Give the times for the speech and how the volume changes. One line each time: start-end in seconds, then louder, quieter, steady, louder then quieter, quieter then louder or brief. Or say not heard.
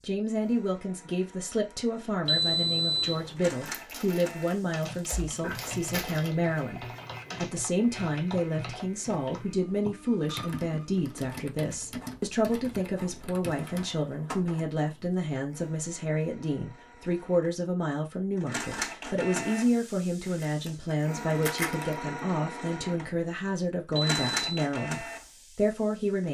0.0-26.2 steady.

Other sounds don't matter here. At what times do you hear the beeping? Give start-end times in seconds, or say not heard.
2.2-3.4, 23.9-24.6.